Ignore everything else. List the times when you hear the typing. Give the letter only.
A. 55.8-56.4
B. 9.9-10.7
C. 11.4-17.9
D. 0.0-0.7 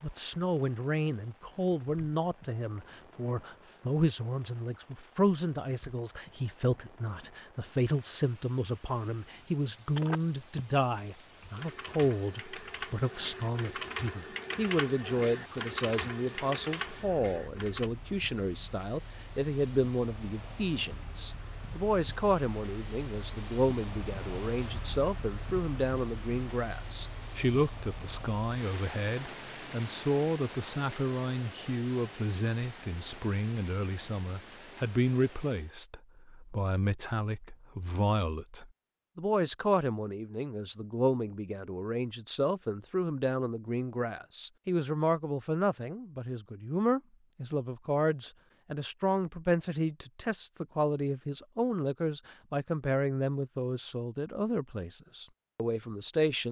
C.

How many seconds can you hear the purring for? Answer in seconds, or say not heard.
not heard.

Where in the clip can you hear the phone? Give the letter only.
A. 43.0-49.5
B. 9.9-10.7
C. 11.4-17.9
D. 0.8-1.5
B.